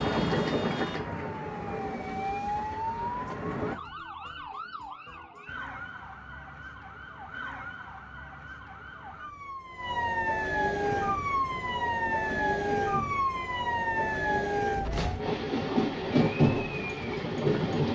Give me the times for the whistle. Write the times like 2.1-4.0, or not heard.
not heard.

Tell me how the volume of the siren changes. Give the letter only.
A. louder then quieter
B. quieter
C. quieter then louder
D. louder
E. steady
C.